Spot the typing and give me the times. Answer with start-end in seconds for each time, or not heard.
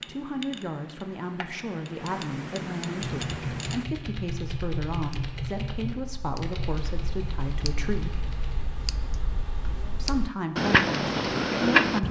3.1-8.7.